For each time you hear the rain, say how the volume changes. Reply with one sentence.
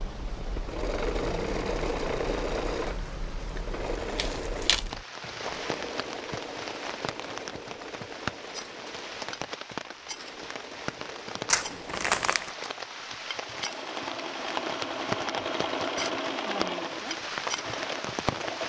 You can hear the rain from 0.0 to 18.6 s, getting louder.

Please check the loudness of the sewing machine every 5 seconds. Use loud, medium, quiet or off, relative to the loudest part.
loud, medium, medium, loud.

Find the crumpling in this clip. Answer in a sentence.
The crumpling can be heard from 4.2 to 4.9 s and from 11.4 to 12.5 s.